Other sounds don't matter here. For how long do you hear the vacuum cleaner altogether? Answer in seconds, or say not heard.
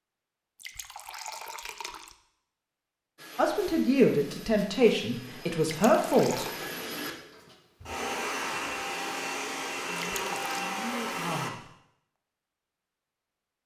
8 s.